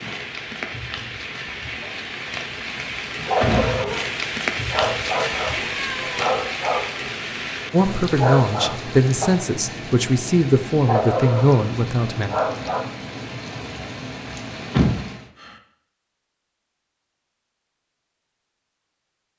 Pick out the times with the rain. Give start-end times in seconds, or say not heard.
0.0-15.3.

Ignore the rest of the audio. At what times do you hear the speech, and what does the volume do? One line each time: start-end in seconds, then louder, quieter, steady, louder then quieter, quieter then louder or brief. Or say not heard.
7.7-12.3 steady.